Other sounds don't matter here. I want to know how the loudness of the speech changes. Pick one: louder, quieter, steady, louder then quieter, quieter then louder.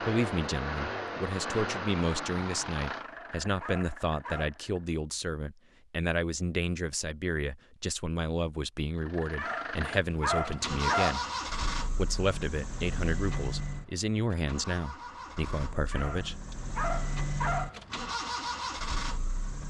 steady.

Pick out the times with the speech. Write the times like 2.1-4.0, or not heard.
0.0-11.2, 11.9-16.6.